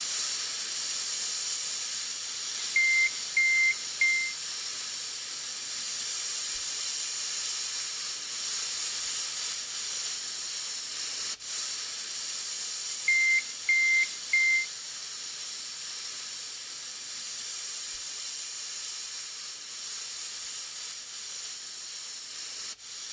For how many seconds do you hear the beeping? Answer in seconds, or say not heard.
3 s.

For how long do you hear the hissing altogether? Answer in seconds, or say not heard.
23 s.